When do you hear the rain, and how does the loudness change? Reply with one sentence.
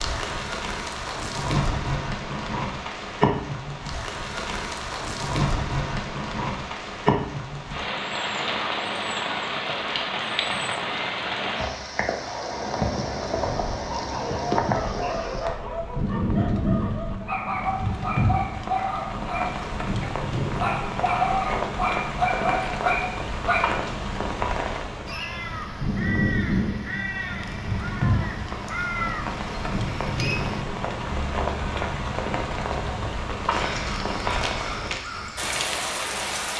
You can hear the rain from 0.0 to 36.5 s, at a steady volume.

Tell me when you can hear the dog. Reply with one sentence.
The dog can be heard from 13.4 to 23.9 s.